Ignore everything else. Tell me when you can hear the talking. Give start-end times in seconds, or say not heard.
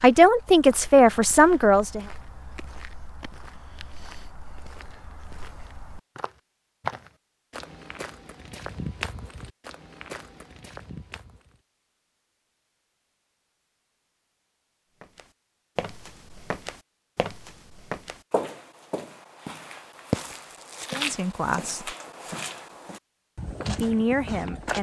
0.0-2.0, 20.9-21.9, 23.6-24.7.